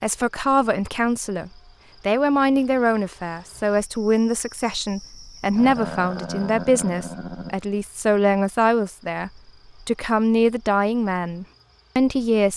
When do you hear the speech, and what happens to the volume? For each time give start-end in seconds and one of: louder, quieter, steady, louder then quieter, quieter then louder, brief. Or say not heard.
0.0-12.5 steady.